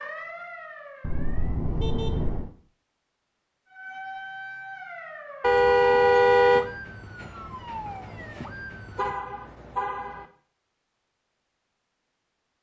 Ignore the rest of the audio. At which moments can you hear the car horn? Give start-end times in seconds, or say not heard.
1.0-2.5, 5.4-6.7, 8.9-10.2.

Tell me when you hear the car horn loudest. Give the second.
6 s.